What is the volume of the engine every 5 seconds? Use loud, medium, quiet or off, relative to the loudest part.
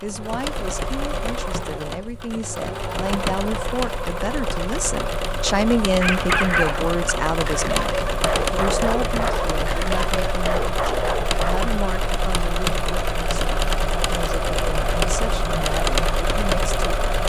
medium, loud, loud, loud.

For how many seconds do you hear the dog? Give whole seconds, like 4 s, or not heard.
6 s.